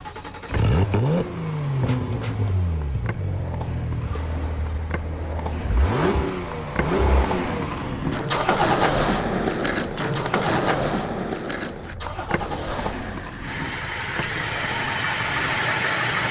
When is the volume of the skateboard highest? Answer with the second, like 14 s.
9 s.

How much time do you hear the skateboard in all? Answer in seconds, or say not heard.
16 s.